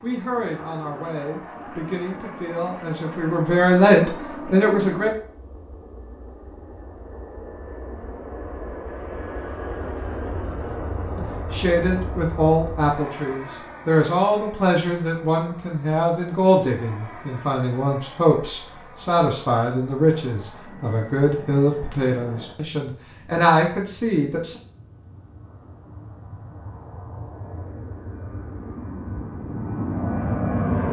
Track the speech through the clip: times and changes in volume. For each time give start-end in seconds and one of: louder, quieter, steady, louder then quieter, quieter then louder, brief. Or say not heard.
0.0-5.1 louder
11.2-24.6 steady.